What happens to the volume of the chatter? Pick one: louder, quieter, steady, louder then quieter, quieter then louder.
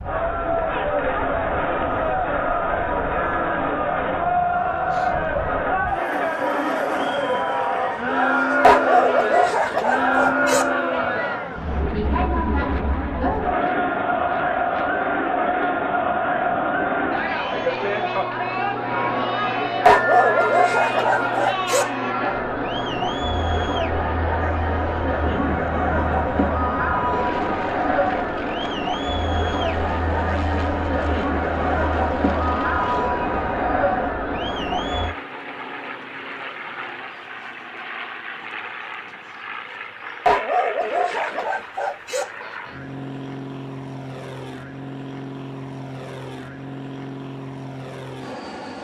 steady.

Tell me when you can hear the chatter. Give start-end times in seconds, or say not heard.
0.0-35.1.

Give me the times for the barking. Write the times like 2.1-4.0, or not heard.
8.6-10.7, 19.9-21.9, 40.2-42.2.